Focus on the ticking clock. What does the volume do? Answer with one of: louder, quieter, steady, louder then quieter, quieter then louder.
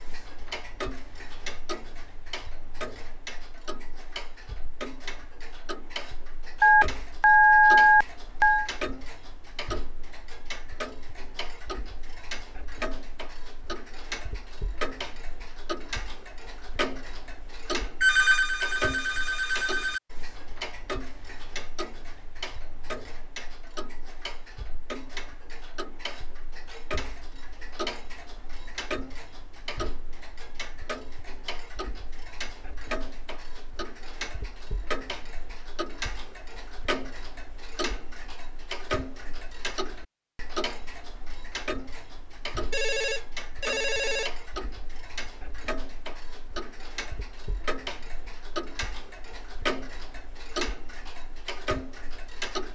steady.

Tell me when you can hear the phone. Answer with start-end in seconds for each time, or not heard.
6.6-8.7, 18.0-20.0, 42.7-44.3.